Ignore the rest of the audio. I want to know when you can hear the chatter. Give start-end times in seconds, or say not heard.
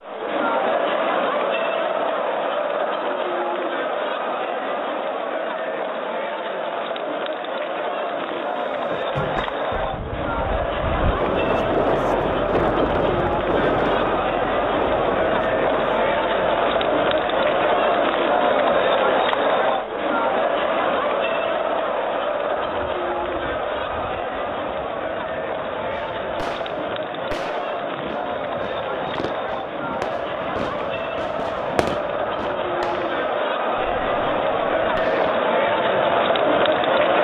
0.0-37.1.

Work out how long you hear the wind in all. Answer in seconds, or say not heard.
29 s.